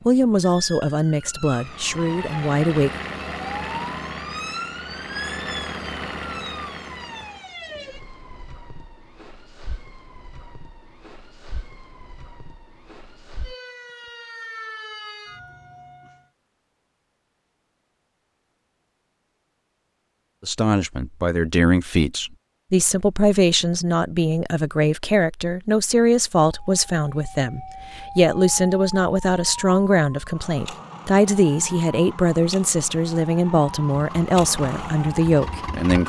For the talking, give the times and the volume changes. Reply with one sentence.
The talking can be heard briefly from 0.1 to 2.9 s; and from 20.4 to 36.0 s, at a steady volume.